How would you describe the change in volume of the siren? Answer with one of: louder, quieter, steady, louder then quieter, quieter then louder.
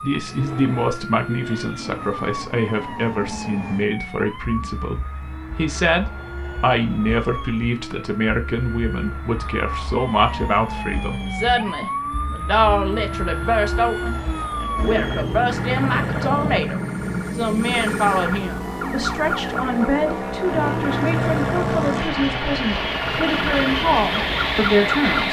louder.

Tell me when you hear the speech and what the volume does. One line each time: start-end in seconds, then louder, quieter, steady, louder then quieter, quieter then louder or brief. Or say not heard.
0.0-25.2 steady.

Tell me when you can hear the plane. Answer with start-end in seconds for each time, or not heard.
0.0-25.2.